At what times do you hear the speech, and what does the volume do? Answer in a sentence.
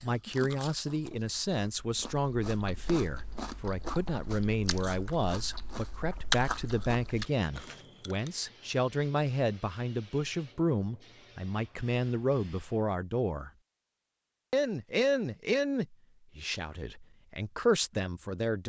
You can hear the speech from 0.0 to 13.5 s, at a steady volume; and from 14.5 to 18.6 s, getting quieter then louder.